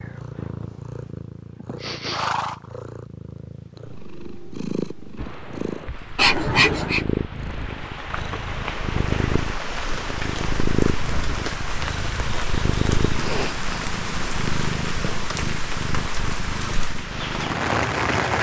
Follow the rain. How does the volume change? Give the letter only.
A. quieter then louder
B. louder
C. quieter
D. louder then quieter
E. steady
B.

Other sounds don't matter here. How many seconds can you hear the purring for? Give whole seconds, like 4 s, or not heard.
18 s.